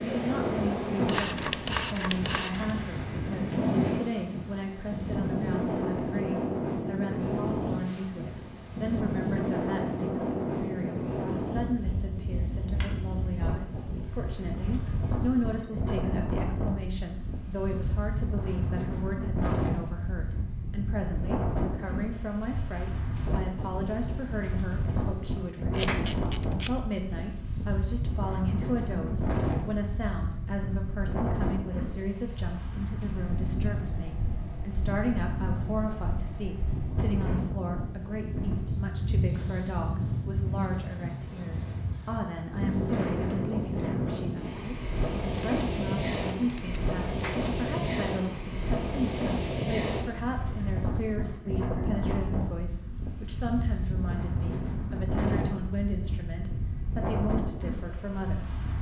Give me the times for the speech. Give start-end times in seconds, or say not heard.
0.0-58.6.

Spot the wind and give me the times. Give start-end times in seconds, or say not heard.
0.0-58.7.